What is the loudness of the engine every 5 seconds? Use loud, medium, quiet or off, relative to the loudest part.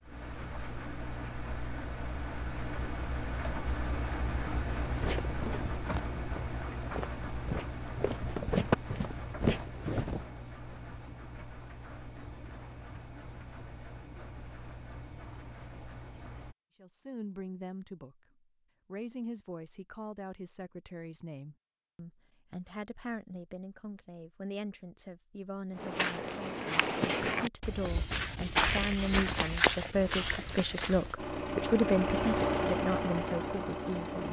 medium, medium, quiet, quiet, off, off, loud.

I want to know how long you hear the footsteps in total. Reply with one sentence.
You can hear the footsteps for 11 seconds altogether.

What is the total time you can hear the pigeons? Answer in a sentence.
The pigeons can't be heard in this clip.